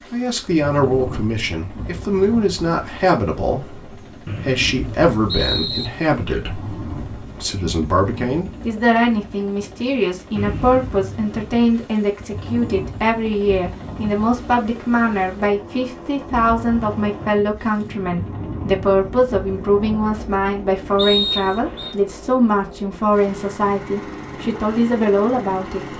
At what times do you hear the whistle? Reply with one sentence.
You can hear the whistle from 4.2 to 5.9 s, from 10.3 to 10.9 s and from 20.9 to 21.9 s.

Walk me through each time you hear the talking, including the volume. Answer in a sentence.
The talking can be heard from 0.1 to 25.9 s, at a steady volume.